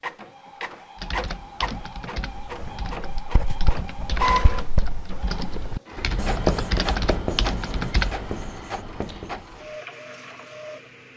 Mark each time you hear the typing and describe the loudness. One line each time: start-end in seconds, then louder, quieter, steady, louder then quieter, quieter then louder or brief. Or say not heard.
0.9-8.3 louder.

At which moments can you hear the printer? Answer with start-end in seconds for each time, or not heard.
0.0-11.1.